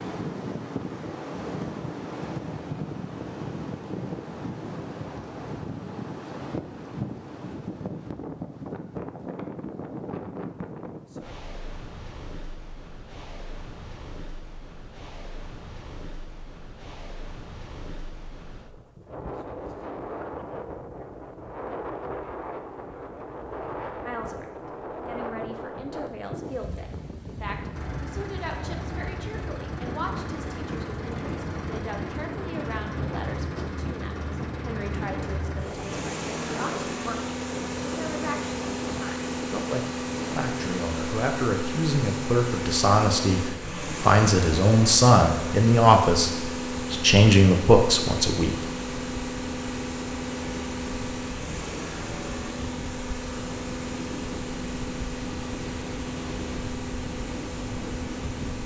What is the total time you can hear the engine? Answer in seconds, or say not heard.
31 s.